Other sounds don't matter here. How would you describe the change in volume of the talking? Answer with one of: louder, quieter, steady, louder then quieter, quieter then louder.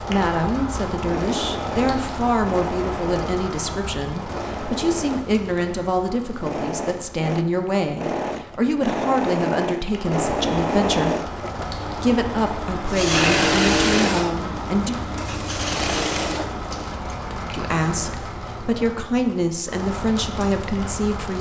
steady.